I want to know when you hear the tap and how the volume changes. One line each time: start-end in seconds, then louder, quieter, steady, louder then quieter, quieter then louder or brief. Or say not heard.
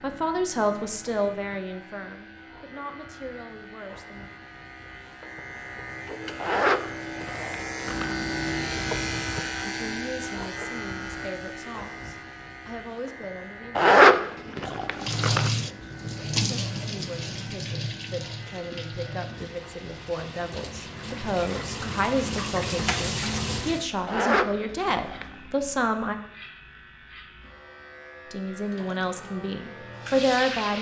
15.0-23.9 quieter then louder
28.6-30.7 brief.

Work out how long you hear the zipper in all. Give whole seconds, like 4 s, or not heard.
5 s.